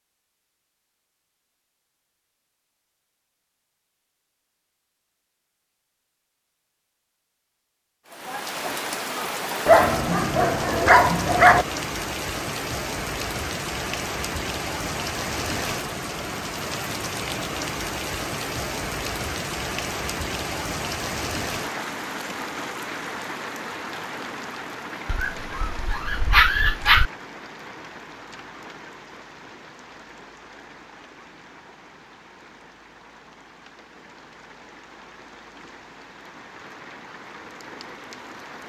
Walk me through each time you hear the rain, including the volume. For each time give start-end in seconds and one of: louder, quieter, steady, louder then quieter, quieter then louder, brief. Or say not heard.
8.1-38.6 quieter.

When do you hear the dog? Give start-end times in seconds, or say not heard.
9.7-11.7, 25.1-27.1.